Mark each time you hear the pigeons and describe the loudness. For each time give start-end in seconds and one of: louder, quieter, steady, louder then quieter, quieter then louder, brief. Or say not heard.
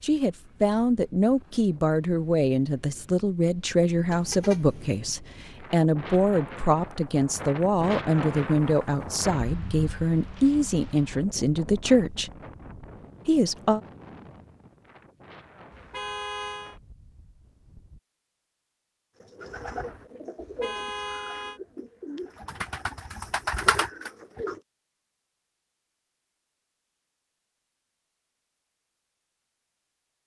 19.2-24.6 louder.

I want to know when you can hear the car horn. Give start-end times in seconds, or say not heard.
4.1-5.0, 15.7-16.8, 20.4-21.6.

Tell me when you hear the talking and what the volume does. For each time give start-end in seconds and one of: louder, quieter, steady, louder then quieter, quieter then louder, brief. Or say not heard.
0.0-12.3 steady
13.2-13.8 brief.